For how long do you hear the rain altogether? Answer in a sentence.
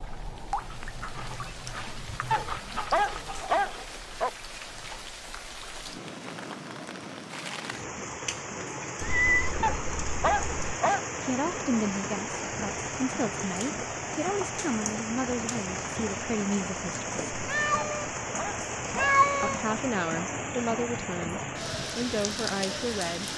The rain can be heard for 23 seconds in total.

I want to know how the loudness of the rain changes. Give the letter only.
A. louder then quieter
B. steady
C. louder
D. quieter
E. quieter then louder
C.